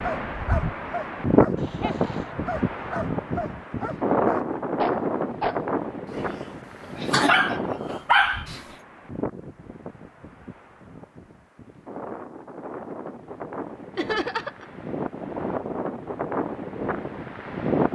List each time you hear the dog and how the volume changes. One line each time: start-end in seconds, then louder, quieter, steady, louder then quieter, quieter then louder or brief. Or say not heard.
0.0-8.7 louder.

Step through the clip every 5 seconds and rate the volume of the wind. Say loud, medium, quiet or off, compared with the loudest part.
loud, medium, quiet, loud.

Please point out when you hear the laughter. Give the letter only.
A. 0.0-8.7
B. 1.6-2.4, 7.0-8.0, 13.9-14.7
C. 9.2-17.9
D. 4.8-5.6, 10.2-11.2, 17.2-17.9
B.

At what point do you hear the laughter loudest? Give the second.
14 s.